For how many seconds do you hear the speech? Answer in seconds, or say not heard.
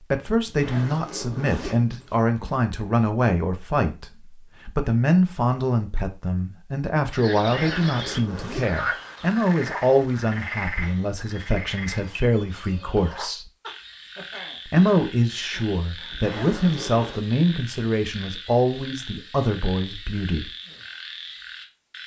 19 s.